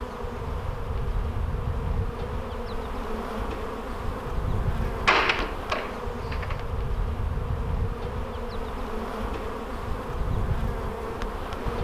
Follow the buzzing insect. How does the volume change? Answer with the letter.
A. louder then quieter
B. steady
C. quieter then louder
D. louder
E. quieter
B.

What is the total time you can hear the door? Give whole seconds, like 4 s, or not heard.
2 s.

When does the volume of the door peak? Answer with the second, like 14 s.
5 s.